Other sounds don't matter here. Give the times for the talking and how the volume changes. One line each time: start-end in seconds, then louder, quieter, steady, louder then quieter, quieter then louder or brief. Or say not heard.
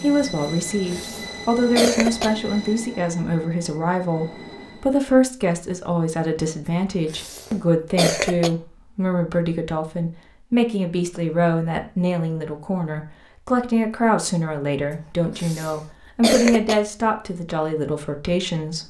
0.0-18.8 steady.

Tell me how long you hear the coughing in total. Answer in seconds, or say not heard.
5 s.